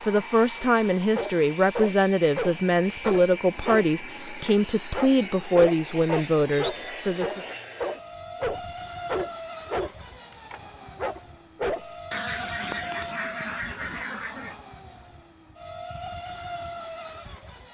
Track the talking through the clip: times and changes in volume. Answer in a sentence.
The talking can be heard from 0.0 to 7.4 s, at a steady volume.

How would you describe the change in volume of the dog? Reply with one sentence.
The volume of the dog stays about the same.